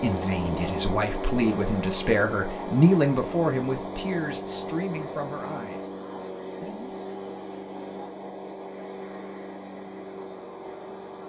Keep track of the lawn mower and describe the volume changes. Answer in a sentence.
The volume of the lawn mower goes down.